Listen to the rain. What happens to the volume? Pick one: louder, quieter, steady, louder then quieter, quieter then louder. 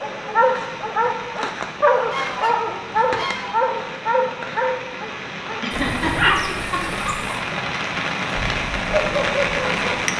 louder.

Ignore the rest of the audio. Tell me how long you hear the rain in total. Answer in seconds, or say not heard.
10 s.